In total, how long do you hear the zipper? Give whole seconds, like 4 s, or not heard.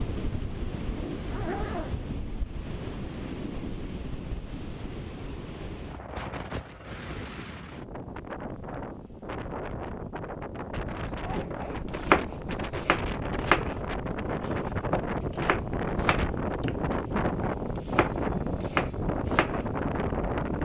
3 s.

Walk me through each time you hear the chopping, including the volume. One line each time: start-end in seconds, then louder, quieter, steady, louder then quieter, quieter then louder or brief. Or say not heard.
11.3-19.7 quieter then louder.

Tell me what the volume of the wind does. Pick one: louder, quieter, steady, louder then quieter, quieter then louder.
louder.